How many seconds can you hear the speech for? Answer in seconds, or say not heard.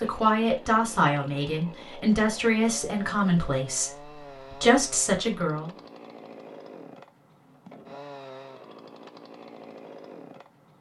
6 s.